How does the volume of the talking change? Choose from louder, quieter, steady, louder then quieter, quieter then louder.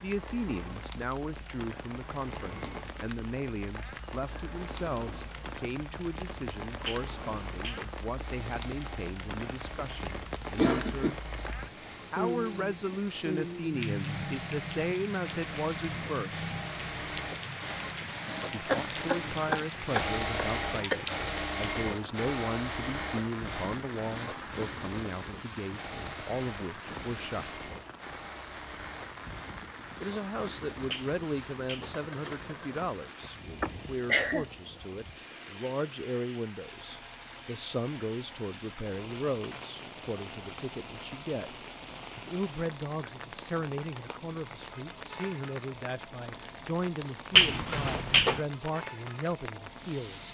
steady.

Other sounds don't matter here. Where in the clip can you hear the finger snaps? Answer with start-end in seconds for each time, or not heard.
6.8-7.9, 30.9-31.9, 47.4-48.4.